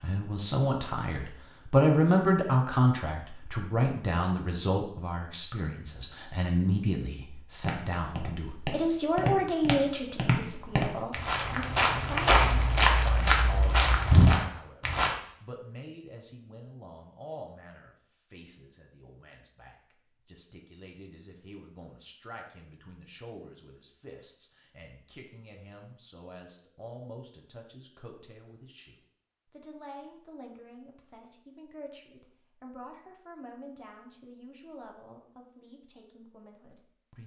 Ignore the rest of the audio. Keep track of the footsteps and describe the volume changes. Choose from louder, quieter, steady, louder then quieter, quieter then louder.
louder.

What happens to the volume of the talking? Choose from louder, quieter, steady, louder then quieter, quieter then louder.
quieter.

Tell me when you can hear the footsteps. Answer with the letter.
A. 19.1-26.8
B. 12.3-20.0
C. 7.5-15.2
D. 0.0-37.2
C.